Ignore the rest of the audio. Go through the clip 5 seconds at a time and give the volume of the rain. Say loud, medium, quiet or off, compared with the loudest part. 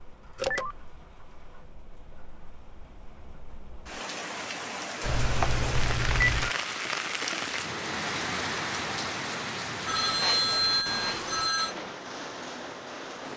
medium, loud, medium.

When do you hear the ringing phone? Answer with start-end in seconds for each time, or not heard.
0.3-0.8, 5.0-6.5, 9.8-11.8.